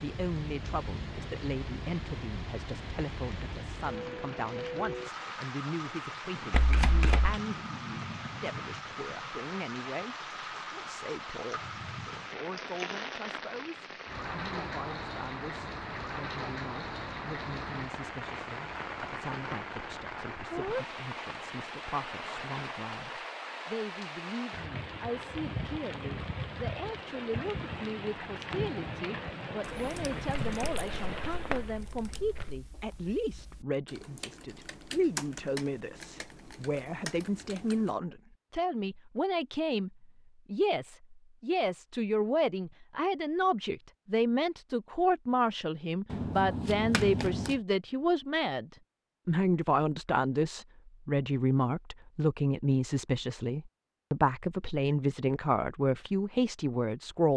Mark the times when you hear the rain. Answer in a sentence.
You can hear the rain from 0.0 to 31.8 s.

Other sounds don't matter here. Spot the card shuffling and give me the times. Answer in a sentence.
You can hear the card shuffling from 6.5 to 7.4 s, from 30.4 to 32.6 s and from 46.1 to 47.6 s.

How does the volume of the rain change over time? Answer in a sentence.
The loudness of the rain stays about the same.